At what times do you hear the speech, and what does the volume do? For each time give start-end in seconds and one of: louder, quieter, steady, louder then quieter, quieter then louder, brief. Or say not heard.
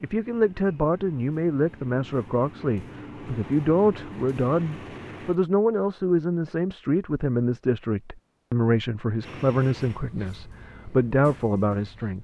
0.0-12.2 steady.